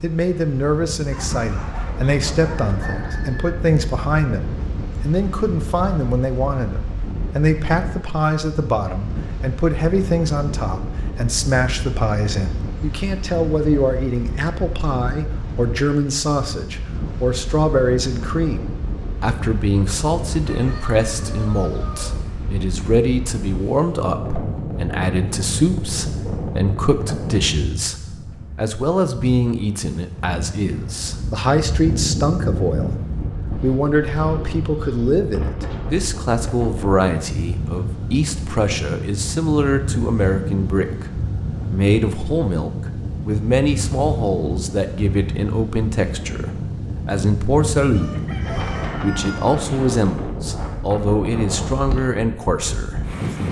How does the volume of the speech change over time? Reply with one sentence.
The volume of the speech stays about the same.